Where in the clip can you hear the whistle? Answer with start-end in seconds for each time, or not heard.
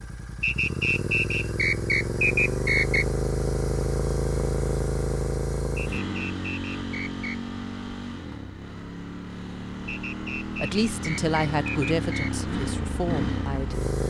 0.4-3.0, 5.8-7.4, 9.8-12.3.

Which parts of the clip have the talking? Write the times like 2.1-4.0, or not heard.
10.6-14.0.